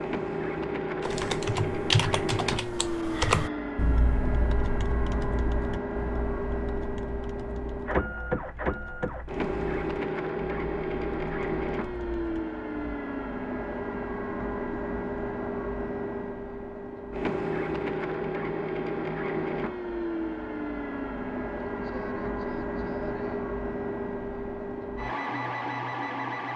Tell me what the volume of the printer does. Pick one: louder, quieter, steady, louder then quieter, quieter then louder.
steady.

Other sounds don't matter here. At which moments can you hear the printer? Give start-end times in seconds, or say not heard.
0.0-26.5.